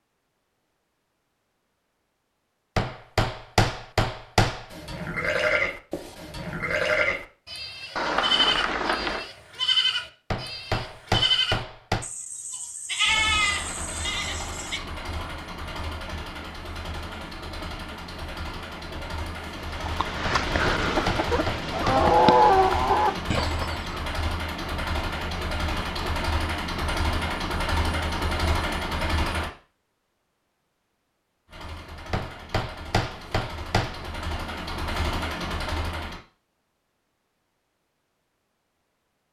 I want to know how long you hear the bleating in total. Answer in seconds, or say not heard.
10 s.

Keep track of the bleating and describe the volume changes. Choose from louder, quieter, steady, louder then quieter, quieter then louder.
steady.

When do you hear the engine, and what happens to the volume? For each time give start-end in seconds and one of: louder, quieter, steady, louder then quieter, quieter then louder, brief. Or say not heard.
13.0-29.5 louder
31.4-36.2 louder.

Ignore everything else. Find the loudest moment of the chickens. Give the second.
22 s.